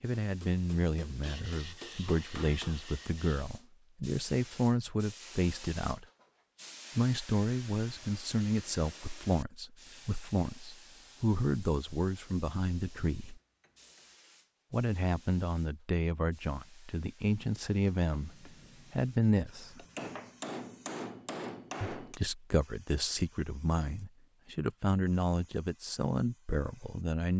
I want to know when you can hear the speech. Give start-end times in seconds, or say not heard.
0.0-6.0, 7.0-13.4, 14.7-19.9, 21.9-27.3.